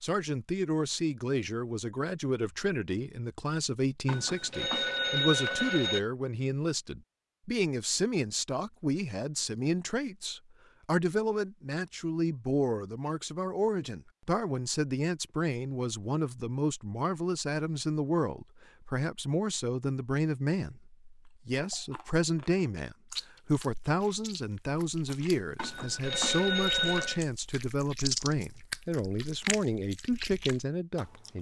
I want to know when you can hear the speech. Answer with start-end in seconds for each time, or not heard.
0.0-31.3.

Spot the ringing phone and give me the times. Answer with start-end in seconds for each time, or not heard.
4.0-6.0, 25.6-27.2.